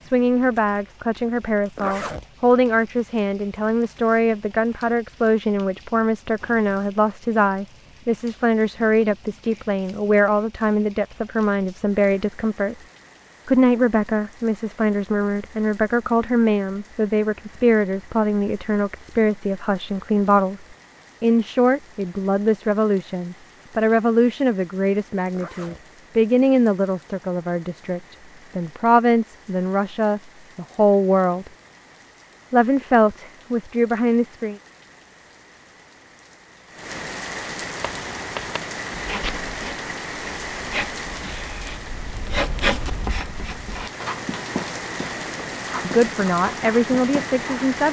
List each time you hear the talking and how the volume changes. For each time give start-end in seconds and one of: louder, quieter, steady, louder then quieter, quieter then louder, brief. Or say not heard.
0.0-12.8 steady
13.4-31.5 steady
32.5-34.6 brief
45.8-47.8 brief.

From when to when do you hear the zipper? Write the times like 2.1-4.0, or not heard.
1.8-2.2, 25.3-25.9.